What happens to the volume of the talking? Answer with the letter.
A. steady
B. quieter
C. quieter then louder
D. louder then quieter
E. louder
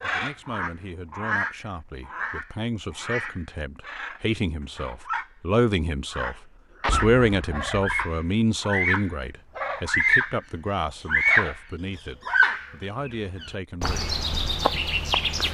D.